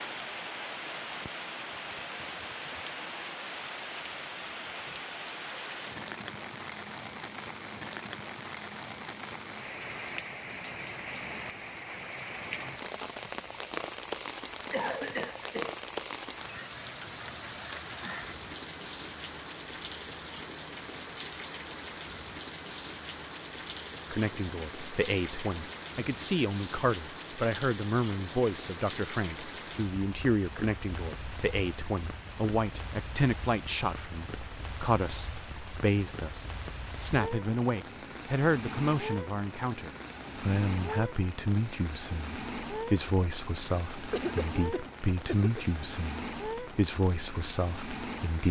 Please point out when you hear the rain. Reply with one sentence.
You can hear the rain from 0.0 to 48.4 s.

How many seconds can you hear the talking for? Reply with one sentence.
The talking can be heard for 24 seconds in total.